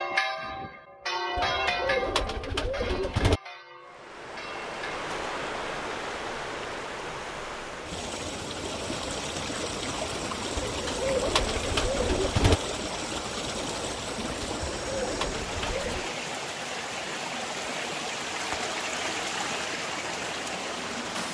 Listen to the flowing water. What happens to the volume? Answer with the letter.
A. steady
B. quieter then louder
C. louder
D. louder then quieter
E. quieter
A.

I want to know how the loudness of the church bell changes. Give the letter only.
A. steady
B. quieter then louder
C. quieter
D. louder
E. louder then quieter
E.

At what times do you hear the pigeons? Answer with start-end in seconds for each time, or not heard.
1.4-3.4, 10.6-12.6, 14.7-16.1.